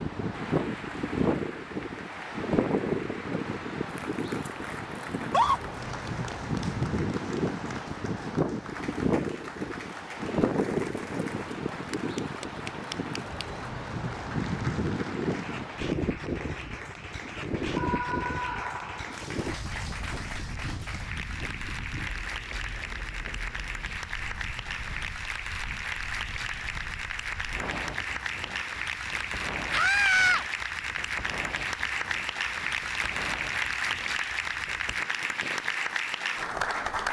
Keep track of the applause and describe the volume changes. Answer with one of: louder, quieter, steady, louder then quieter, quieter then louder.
louder.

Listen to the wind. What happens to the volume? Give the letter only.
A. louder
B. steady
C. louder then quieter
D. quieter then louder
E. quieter
E.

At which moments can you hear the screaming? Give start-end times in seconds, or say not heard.
5.2-5.6, 17.8-19.2, 29.7-30.4.